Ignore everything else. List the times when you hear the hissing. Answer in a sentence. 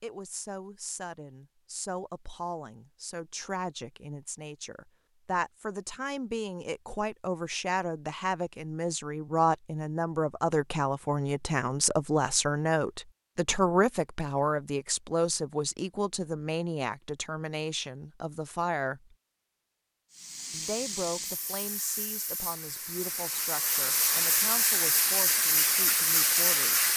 You can hear the hissing from 20.1 to 26.9 s.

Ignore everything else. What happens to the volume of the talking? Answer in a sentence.
The volume of the talking goes up, then down.